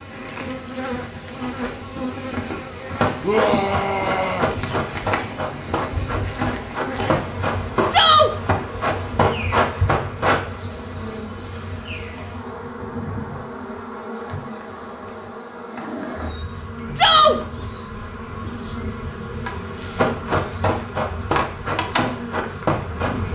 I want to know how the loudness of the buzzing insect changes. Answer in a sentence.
The volume of the buzzing insect stays about the same.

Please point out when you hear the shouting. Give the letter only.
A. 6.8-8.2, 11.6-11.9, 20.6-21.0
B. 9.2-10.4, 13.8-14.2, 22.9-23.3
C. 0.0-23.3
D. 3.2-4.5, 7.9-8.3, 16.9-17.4
D.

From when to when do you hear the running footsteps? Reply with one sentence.
You can hear the running footsteps from 3.0 to 10.4 s and from 19.9 to 23.3 s.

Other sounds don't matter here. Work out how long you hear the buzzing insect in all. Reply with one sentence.
You can hear the buzzing insect for 23 seconds altogether.